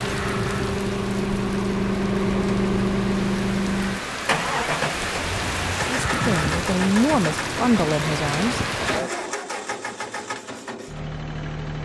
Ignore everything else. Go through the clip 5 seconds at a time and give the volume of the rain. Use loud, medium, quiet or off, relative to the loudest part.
medium, loud, off.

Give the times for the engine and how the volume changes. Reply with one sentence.
You can hear the engine from 0.0 to 11.8 s, getting quieter.